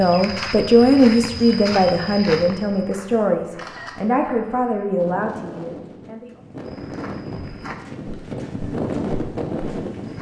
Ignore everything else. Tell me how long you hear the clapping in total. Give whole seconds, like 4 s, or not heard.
not heard.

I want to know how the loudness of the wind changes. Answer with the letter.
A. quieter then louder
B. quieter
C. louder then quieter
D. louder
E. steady
D.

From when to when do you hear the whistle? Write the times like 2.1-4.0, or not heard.
not heard.